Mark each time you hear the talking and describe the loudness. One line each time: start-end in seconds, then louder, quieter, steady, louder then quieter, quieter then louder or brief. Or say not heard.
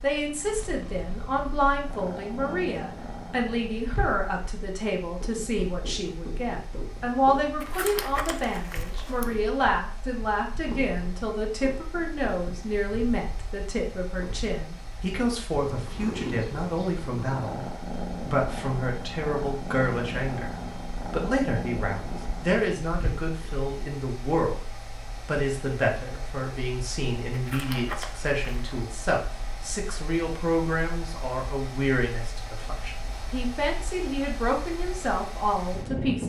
0.0-36.2 steady.